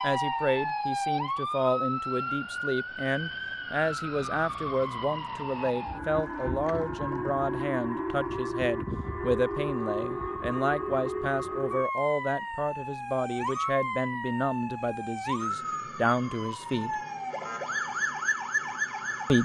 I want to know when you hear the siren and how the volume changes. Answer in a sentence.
You can hear the siren from 0.0 to 19.4 s, at a steady volume.